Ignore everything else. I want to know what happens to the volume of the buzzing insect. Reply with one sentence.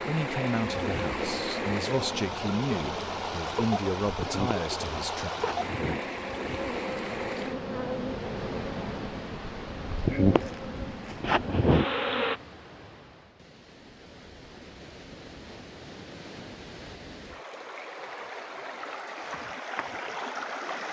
The loudness of the buzzing insect goes up.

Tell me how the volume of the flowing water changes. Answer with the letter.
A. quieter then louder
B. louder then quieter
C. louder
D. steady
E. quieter
A.